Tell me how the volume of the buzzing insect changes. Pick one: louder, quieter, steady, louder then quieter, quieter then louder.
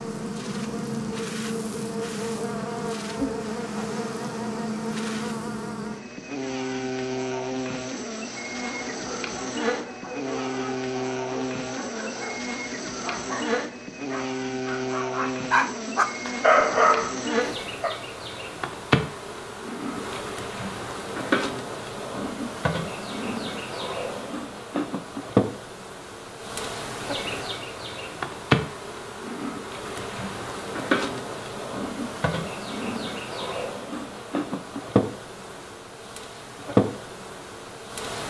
steady.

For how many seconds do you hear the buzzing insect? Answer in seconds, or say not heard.
38 s.